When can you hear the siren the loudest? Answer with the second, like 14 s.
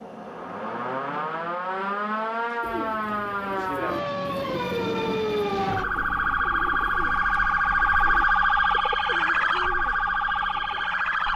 8 s.